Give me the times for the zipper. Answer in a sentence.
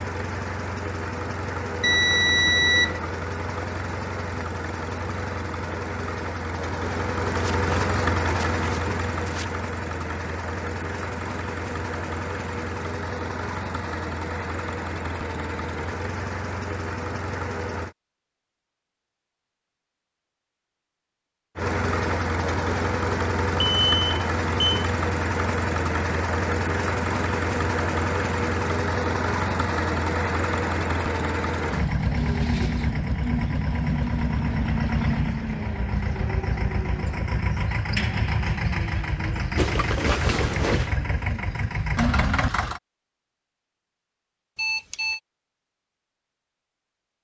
You can hear the zipper from 7.3 to 9.4 s and from 39.5 to 41.0 s.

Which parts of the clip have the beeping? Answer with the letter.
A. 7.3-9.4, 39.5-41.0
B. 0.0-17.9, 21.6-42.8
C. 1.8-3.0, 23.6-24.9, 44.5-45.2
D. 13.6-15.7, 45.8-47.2
C.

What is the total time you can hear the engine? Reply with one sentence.
You can hear the engine for 39 seconds altogether.